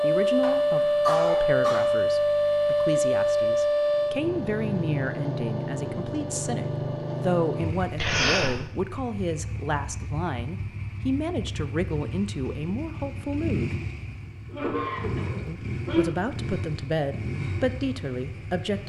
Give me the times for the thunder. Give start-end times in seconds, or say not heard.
not heard.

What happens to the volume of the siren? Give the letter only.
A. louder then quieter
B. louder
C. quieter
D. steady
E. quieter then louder
C.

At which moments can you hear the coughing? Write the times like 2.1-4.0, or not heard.
0.4-1.9, 8.0-8.6, 14.5-16.1.